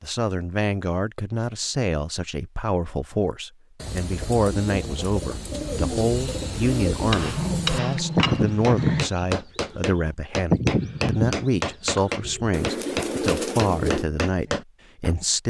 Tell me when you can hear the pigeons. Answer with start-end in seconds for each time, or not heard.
3.8-14.1.